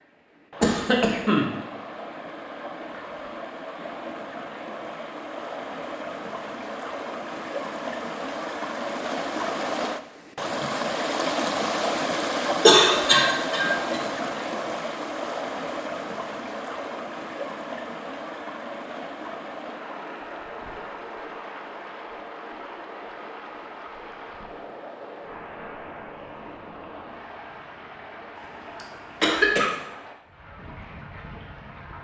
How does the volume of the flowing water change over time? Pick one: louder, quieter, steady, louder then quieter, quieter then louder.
louder then quieter.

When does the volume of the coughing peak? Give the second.
13 s.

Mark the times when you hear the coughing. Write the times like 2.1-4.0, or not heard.
0.6-1.4, 12.6-14.0, 28.4-29.7.